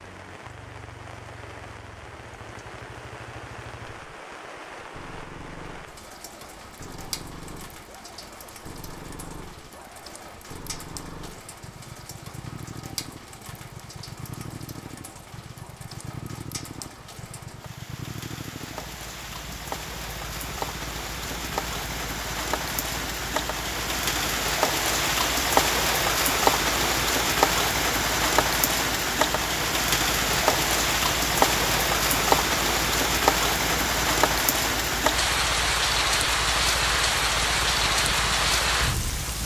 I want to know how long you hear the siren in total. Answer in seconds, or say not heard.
not heard.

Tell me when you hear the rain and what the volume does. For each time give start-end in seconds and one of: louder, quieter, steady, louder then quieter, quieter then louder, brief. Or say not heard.
0.0-39.4 louder.